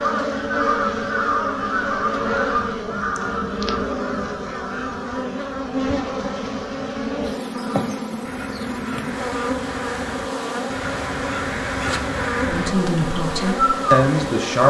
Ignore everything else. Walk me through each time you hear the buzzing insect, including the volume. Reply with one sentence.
You can hear the buzzing insect from 0.0 to 14.6 s, at a steady volume.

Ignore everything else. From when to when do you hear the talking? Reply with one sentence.
You can hear the talking from 12.4 to 14.6 s.